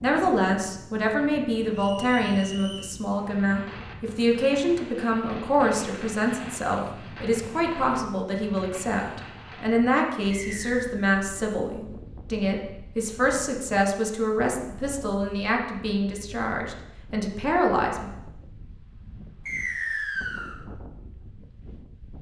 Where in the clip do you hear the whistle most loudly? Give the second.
20 s.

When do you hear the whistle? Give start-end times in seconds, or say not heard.
1.7-2.9, 10.3-10.8, 19.4-20.6.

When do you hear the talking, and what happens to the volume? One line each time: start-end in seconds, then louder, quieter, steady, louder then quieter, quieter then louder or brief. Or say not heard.
0.0-18.1 steady.